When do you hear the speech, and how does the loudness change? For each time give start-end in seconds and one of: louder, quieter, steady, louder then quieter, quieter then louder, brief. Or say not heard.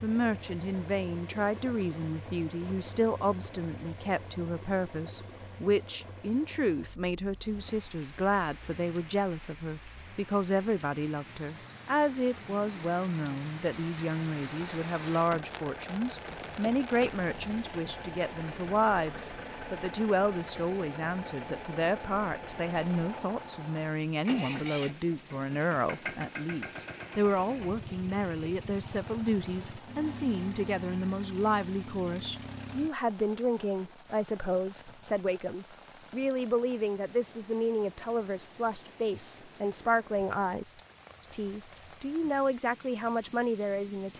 0.0-44.1 steady.